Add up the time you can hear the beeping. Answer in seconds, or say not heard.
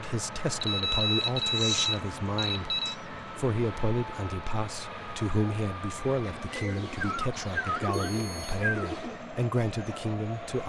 3 s.